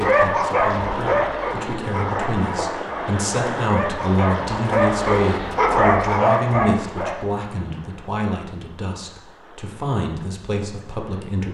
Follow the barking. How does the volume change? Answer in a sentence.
The volume of the barking goes down, then up.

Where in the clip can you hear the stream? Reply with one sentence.
You can hear the stream from 0.1 to 11.4 s.